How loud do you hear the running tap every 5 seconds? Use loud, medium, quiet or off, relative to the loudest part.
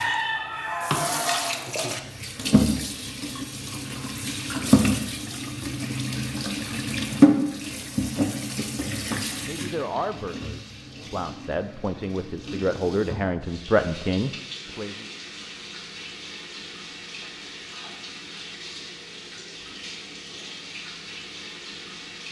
loud, loud, quiet, quiet, quiet.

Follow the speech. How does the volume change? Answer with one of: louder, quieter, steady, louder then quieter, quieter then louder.
louder.